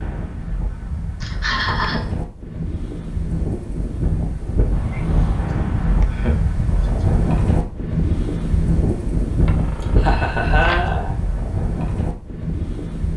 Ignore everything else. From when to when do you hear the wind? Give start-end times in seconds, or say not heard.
0.0-13.1.